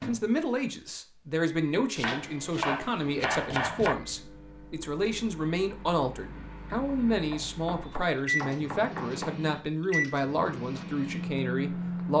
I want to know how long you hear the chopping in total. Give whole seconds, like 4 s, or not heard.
5 s.